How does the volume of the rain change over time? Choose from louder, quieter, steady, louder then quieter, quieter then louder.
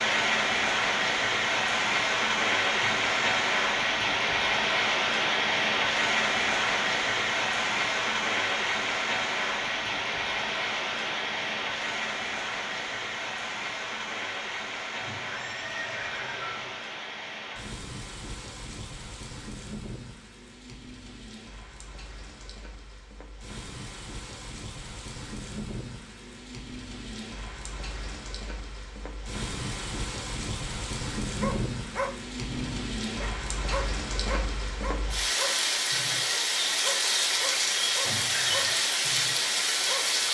quieter then louder.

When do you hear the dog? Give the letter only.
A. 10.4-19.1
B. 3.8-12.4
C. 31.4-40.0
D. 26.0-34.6
C.